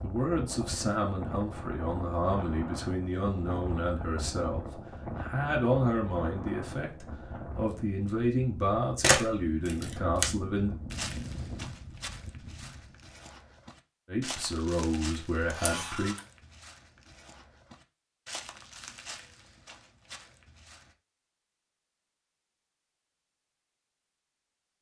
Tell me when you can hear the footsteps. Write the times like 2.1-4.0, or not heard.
10.9-20.9.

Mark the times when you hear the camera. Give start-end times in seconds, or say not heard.
9.0-10.2, 15.5-16.2.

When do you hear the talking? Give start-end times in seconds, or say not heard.
0.0-10.8, 14.1-16.1.